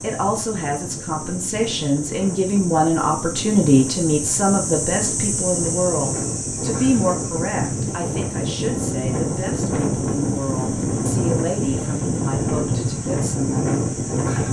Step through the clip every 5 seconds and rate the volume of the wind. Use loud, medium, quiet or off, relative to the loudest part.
medium, loud, loud.